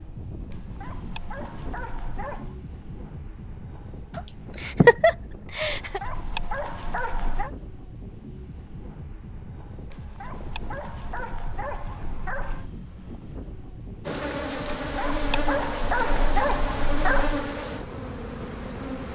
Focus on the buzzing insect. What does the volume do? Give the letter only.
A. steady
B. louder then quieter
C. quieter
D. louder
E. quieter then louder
C.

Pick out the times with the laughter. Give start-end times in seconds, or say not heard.
4.2-6.0.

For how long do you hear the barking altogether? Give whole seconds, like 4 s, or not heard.
9 s.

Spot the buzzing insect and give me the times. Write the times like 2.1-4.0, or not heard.
14.1-19.1.